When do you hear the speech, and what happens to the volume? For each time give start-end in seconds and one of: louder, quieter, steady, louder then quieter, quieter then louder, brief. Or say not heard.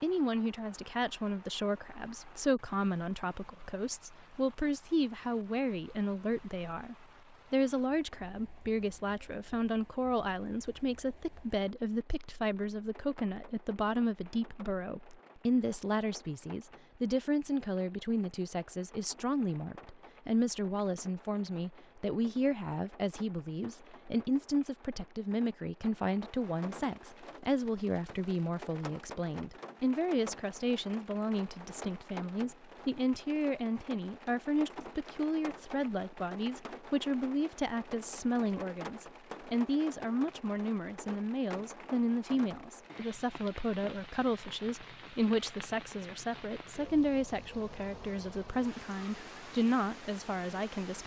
0.0-51.0 steady.